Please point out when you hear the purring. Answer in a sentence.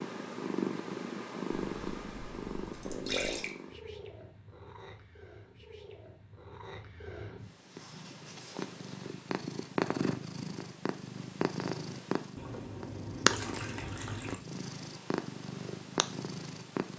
The purring can be heard from 0.0 to 16.9 s.